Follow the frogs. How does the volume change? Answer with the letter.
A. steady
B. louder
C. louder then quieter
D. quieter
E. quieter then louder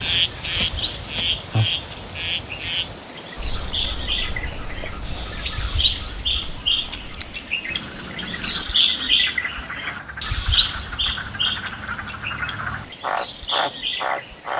E.